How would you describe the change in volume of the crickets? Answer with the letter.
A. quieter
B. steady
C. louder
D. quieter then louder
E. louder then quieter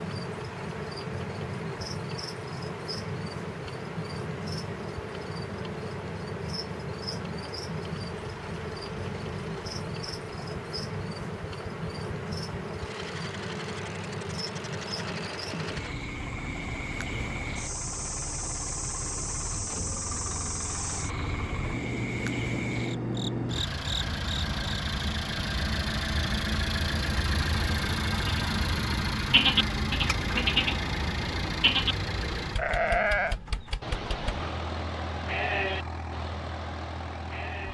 B.